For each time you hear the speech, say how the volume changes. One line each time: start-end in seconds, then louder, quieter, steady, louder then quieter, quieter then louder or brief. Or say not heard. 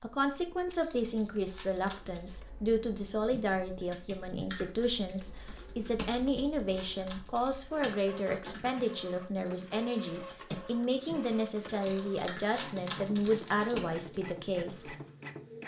0.0-14.9 steady.